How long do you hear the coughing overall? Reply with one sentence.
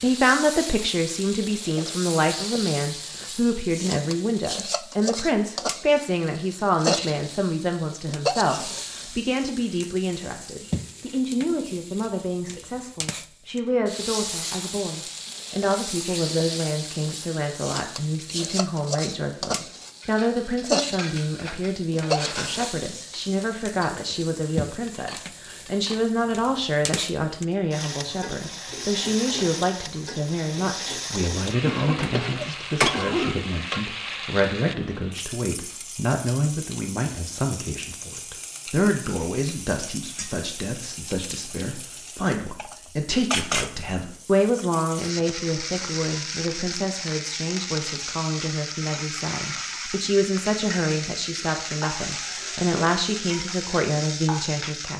The coughing can be heard for 2 seconds in total.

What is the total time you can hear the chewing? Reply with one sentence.
The chewing can't be heard in this clip.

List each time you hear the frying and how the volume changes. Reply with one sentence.
You can hear the frying from 0.0 to 54.9 s, at a steady volume.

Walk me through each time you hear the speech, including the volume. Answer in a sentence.
You can hear the speech from 0.0 to 54.9 s, at a steady volume.